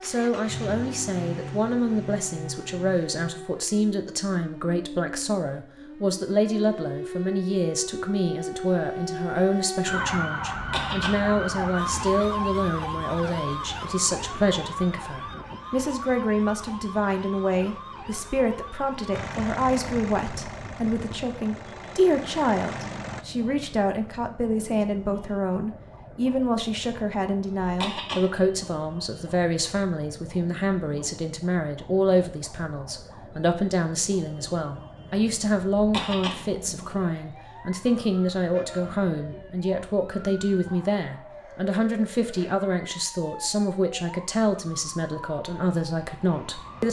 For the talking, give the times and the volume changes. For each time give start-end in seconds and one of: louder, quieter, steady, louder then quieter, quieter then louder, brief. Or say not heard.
0.0-46.8 steady.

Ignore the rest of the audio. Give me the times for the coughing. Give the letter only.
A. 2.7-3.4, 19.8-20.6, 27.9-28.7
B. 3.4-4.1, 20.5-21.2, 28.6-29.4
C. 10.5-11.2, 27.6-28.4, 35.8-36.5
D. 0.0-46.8
C.